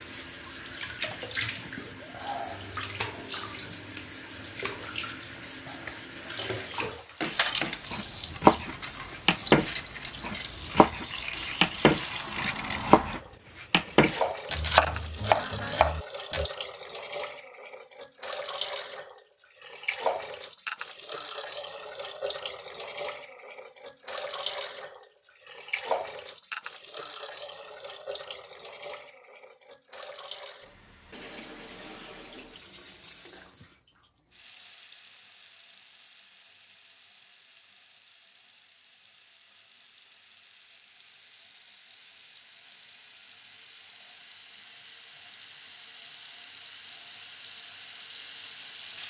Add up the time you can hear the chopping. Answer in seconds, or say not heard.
10 s.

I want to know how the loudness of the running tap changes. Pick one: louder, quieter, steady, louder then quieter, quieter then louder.
quieter.